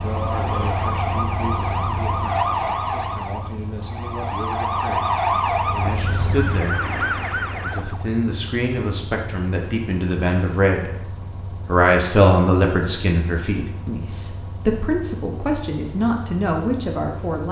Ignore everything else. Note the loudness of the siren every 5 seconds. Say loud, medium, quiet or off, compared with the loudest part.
loud, loud, off, off.